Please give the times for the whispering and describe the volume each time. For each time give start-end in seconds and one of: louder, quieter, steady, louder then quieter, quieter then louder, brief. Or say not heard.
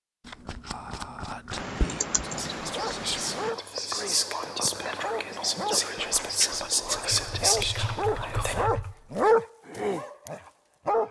0.7-8.7 louder.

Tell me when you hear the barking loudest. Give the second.
9 s.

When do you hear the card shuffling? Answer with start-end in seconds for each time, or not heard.
0.2-1.8, 7.8-8.4.